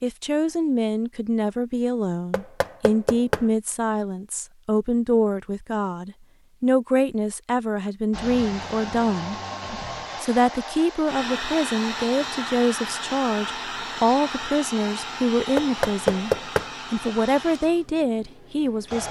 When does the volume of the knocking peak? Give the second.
16 s.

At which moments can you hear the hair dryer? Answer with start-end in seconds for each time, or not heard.
8.1-19.0.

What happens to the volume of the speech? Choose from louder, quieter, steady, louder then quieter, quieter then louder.
steady.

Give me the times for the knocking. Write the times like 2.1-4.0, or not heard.
2.3-3.5, 15.6-16.7.